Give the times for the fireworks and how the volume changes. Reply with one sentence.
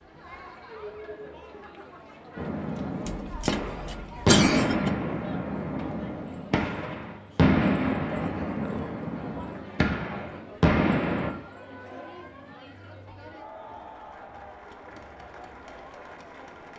You can hear the fireworks from 2.4 to 11.3 s, at a steady volume.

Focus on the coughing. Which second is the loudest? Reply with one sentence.
The volume of the coughing peaks at 4 seconds.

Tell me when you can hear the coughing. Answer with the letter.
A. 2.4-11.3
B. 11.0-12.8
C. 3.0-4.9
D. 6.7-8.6
C.